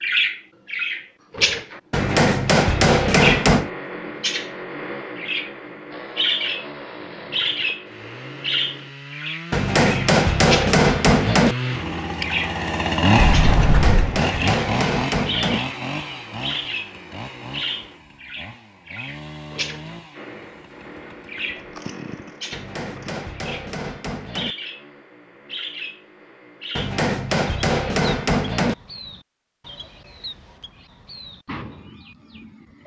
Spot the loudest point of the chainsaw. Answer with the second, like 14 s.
13 s.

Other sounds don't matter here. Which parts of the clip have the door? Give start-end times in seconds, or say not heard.
13.2-14.1.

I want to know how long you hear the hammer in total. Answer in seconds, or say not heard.
10 s.